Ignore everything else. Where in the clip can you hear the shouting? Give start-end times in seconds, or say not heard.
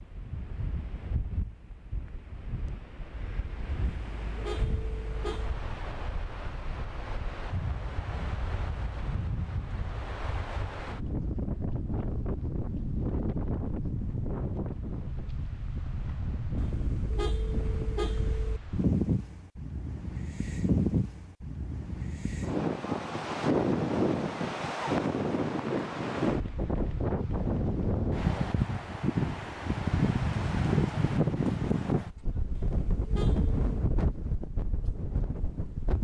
not heard.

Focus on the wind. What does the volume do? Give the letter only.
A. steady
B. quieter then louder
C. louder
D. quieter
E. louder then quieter
C.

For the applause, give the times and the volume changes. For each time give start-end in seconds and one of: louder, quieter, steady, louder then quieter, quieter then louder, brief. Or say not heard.
not heard.